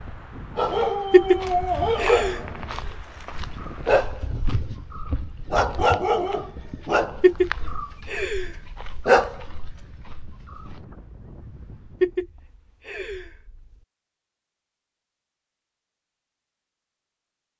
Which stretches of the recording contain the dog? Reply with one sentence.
You can hear the dog from 0.6 to 10.8 s.